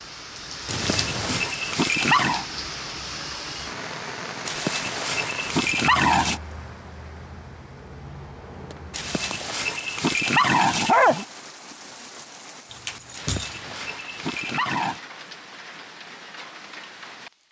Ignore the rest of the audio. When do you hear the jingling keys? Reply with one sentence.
You can hear the jingling keys from 0.7 to 1.5 s, from 8.5 to 9.5 s and from 12.7 to 13.8 s.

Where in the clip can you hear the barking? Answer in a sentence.
The barking can be heard from 0.7 to 2.5 s, from 4.5 to 6.4 s, from 8.9 to 11.2 s and from 13.2 to 15.0 s.